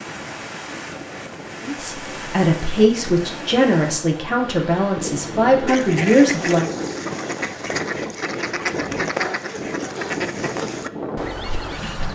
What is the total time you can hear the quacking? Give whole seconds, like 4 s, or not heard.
6 s.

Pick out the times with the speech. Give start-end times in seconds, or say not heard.
1.6-6.7.